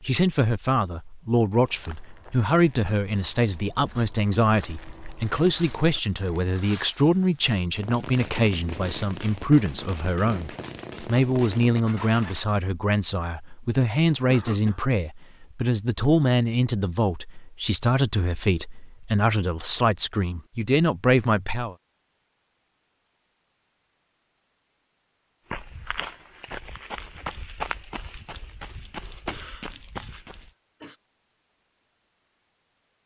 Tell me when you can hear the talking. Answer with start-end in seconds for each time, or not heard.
0.0-21.8.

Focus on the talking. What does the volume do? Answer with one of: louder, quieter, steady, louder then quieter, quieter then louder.
steady.